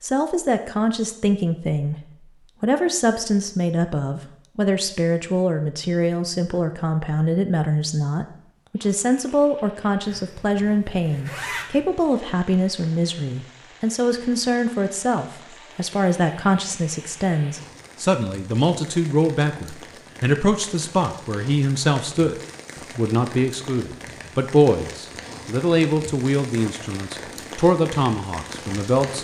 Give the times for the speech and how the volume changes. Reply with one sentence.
The speech can be heard from 0.0 to 29.1 s, at a steady volume.